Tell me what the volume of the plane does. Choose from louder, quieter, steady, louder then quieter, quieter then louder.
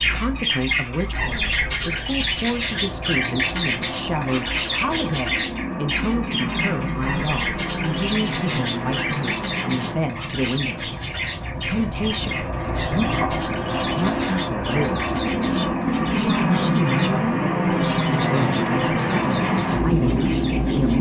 louder.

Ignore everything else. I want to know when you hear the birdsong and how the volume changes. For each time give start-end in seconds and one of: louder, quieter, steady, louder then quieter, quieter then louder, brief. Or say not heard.
0.0-20.9 quieter.